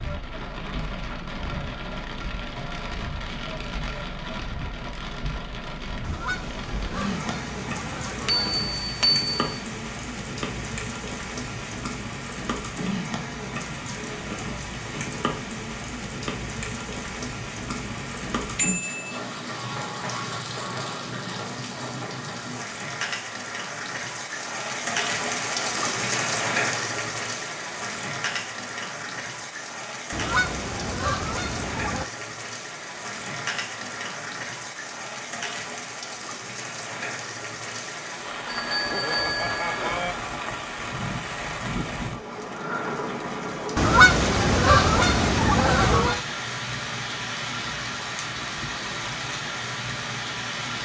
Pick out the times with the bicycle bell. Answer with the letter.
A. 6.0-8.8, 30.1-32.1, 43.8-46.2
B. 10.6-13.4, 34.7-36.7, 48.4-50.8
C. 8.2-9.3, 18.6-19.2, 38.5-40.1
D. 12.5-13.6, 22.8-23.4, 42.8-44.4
C.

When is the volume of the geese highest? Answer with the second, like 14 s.
44 s.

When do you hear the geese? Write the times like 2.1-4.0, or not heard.
6.0-8.8, 30.1-32.1, 43.8-46.2.